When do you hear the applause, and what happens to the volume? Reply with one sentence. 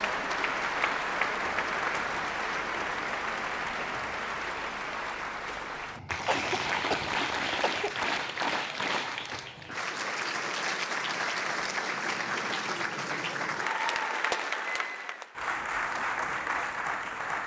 The applause can be heard from 0.0 to 17.4 s, at a steady volume.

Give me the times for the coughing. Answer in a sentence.
You can hear the coughing from 6.2 to 8.0 s.